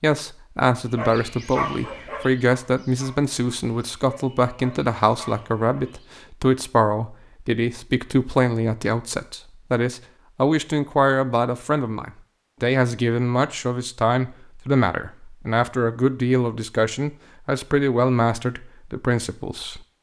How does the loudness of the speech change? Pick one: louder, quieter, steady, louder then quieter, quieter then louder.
steady.